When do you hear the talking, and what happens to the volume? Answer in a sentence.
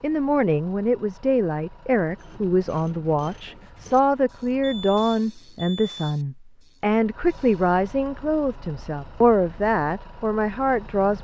You can hear the talking from 0.0 to 11.2 s, at a steady volume.